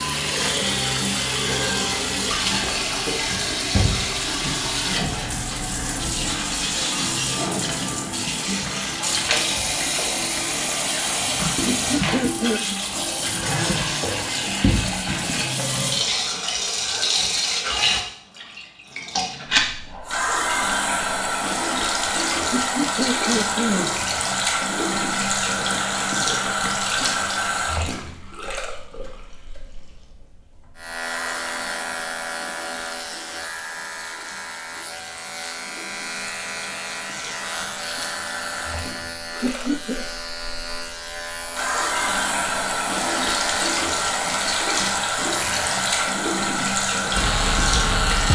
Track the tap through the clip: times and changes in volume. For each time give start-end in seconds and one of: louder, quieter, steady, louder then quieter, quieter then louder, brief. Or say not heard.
0.0-48.3 quieter then louder.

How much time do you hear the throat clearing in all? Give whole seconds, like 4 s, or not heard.
3 s.